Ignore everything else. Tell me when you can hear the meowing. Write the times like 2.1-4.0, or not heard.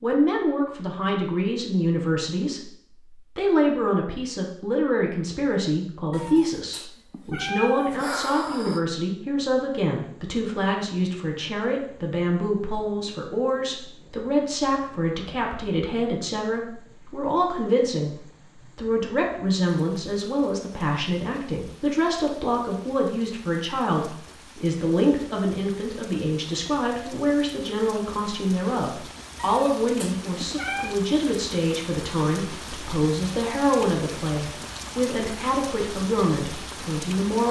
6.1-8.8, 29.4-30.9.